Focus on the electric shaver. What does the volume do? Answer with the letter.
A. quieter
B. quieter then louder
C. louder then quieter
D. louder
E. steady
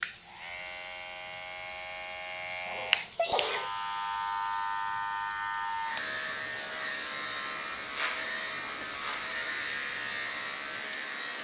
D.